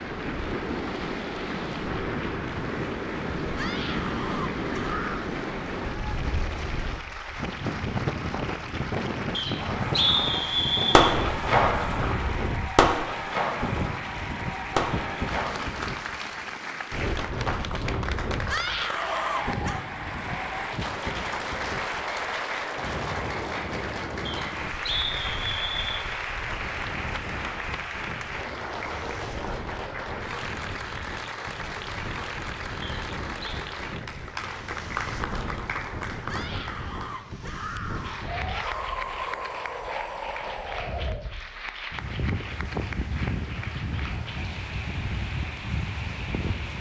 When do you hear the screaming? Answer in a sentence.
You can hear the screaming from 3.5 to 5.3 s, from 18.5 to 19.9 s and from 36.2 to 38.9 s.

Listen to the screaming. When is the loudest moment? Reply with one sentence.
The volume of the screaming peaks at 19 seconds.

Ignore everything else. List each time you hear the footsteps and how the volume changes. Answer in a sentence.
The footsteps can't be heard in this clip.